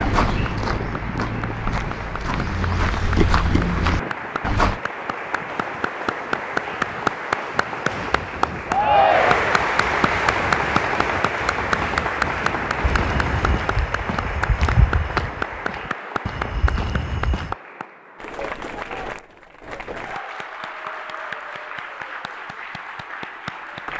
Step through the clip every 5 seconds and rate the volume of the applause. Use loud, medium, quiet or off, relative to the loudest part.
medium, loud, loud, medium, medium.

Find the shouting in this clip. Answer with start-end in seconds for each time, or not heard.
8.7-9.6.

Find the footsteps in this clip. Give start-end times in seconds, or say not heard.
0.0-4.8, 12.8-17.6.